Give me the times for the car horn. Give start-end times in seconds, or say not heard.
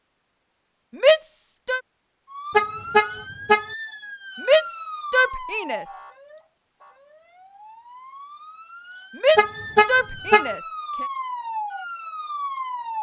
2.5-3.6, 9.3-10.5.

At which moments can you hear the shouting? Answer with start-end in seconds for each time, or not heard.
0.9-1.8, 4.5-5.8, 9.2-11.1.